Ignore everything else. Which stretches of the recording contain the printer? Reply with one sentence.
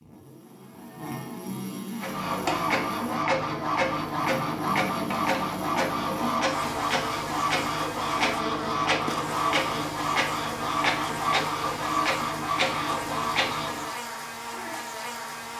The printer can be heard from 2.0 to 13.9 s.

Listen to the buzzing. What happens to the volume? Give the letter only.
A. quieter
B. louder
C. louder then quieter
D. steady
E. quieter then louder
D.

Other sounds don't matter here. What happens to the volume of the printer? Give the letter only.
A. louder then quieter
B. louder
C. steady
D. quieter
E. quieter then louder
C.